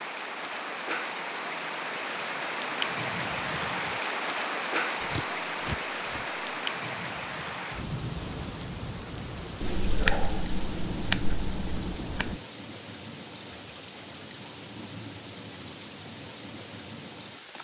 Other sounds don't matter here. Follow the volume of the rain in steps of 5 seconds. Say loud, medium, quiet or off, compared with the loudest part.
loud, loud, medium, medium.